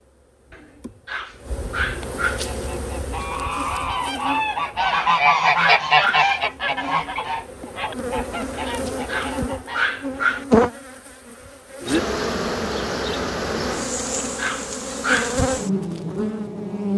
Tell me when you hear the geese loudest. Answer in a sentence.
The volume of the geese peaks at 6 seconds.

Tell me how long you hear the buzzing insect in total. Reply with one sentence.
The buzzing insect can be heard for 17 seconds in total.